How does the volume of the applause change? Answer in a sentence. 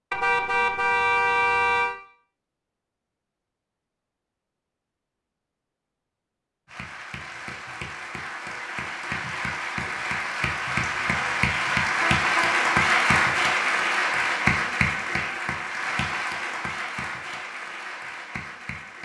The loudness of the applause goes up, then down.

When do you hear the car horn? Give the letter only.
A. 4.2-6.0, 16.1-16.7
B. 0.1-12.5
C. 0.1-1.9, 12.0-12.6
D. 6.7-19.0
C.